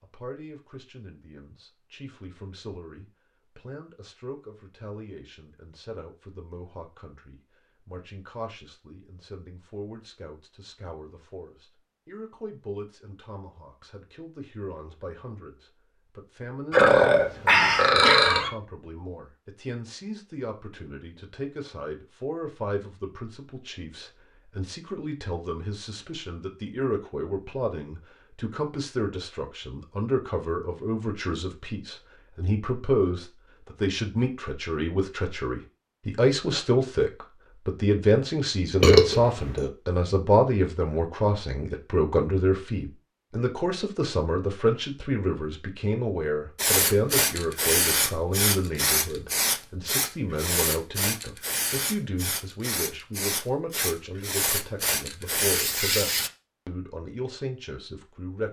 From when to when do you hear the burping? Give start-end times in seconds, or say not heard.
16.7-18.5, 38.8-39.6.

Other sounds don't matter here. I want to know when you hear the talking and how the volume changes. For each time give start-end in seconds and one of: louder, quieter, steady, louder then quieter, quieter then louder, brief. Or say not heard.
0.0-58.4 louder then quieter.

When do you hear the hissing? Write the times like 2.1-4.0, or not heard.
46.5-56.3.